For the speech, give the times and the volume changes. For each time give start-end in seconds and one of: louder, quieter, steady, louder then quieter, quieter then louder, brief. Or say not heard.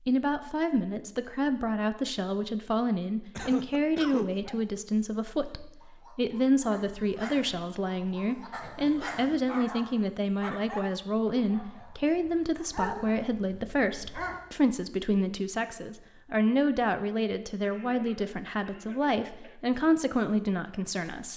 0.1-21.3 steady.